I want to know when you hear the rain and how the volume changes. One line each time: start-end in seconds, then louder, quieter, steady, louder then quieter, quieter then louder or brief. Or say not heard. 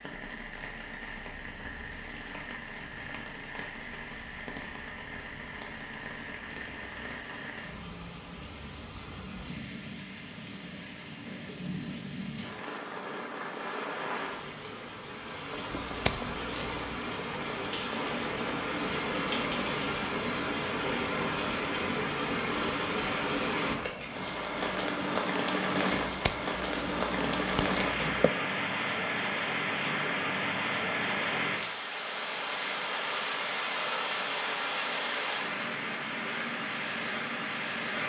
0.0-38.0 louder.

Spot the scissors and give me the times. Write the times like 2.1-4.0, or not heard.
15.7-16.9, 26.1-28.3.